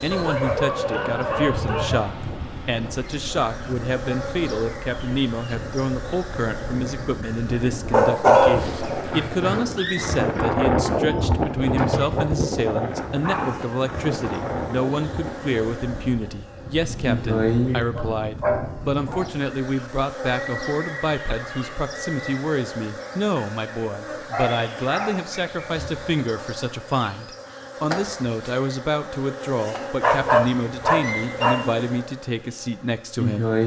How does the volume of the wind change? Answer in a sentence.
The loudness of the wind goes up, then down.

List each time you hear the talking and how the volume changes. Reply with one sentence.
You can hear the talking from 0.0 to 33.5 s, at a steady volume.